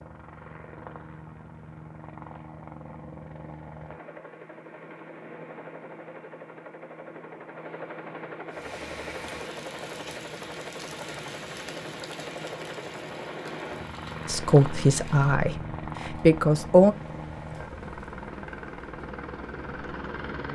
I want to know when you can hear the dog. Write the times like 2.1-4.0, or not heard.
not heard.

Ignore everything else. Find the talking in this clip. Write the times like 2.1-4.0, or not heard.
14.2-16.9.